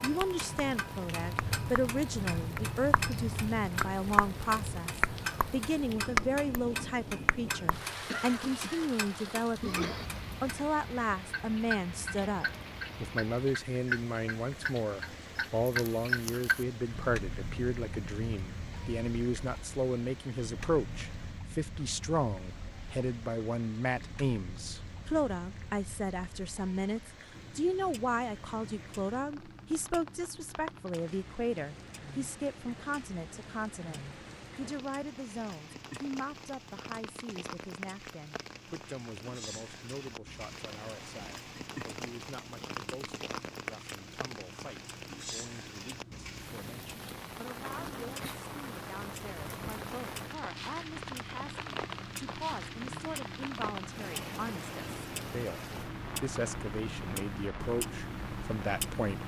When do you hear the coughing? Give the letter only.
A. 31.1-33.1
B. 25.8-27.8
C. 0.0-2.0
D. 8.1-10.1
D.